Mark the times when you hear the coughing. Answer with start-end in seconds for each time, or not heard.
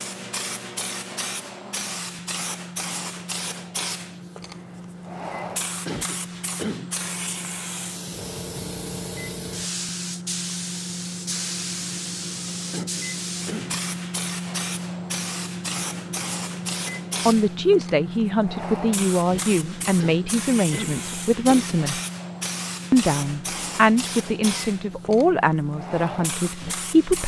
5.8-7.0, 12.7-13.8, 19.9-21.8.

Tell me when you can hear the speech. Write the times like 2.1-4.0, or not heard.
17.2-22.0, 22.9-27.2.